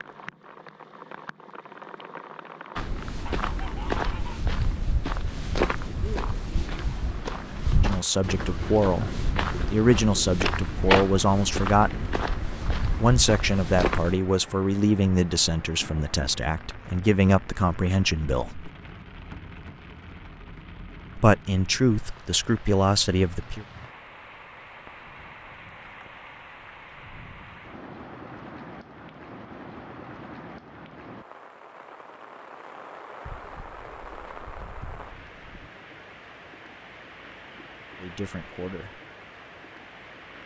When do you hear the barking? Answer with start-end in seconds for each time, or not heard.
not heard.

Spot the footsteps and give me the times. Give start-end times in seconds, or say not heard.
2.8-14.2.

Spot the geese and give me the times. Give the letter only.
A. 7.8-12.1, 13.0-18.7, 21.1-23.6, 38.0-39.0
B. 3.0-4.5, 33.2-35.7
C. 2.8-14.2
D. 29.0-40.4
B.